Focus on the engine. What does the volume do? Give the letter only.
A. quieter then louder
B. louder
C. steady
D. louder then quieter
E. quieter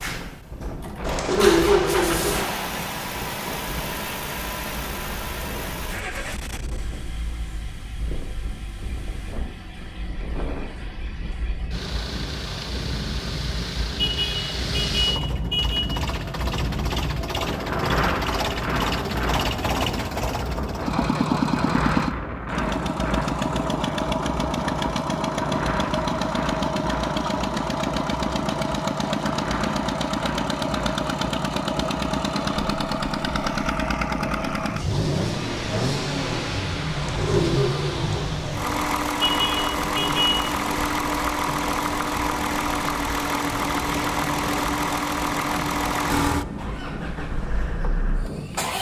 B.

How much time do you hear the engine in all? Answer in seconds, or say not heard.
49 s.